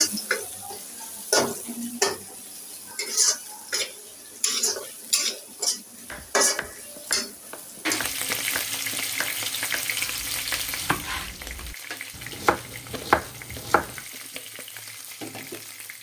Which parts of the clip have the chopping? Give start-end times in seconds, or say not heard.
6.1-13.9.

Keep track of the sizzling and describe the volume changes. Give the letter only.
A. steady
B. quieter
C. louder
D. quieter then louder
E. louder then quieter
B.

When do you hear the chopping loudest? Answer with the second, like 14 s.
13 s.